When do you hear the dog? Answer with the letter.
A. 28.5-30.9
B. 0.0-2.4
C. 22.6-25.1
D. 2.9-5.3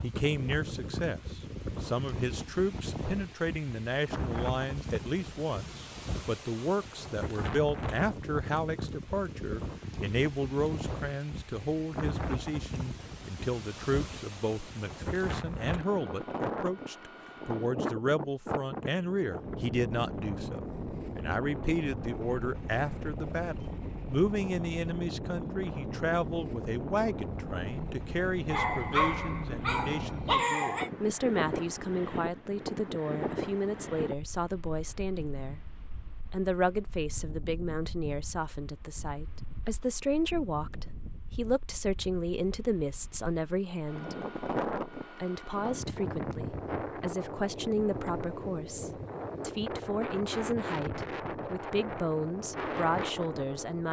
A.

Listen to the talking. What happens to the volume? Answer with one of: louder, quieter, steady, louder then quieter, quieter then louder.
steady.